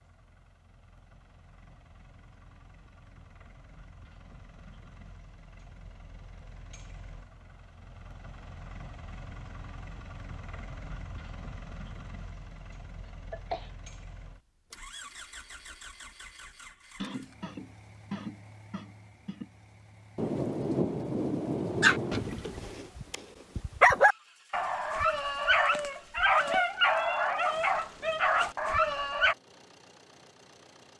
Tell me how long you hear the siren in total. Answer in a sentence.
You can't hear the siren here.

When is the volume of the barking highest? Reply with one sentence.
The loudest moment of the barking is at 24 seconds.